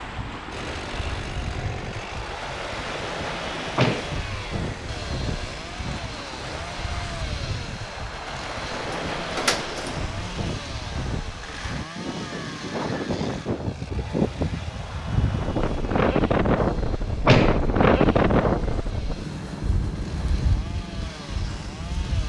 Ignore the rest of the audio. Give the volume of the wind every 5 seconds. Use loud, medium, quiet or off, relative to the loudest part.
medium, medium, medium, loud, medium.